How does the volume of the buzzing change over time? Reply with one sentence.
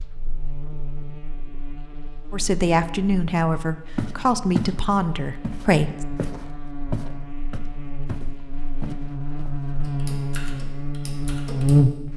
The loudness of the buzzing goes up.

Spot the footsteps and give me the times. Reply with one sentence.
The footsteps can be heard from 4.0 to 4.8 s and from 5.4 to 9.7 s.